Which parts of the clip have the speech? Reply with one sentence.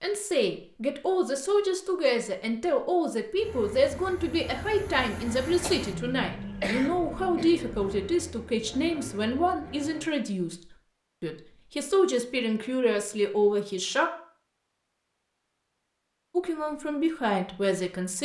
You can hear the speech from 0.0 to 14.1 s and from 16.4 to 18.1 s.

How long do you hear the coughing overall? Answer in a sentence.
You can hear the coughing for 2 seconds altogether.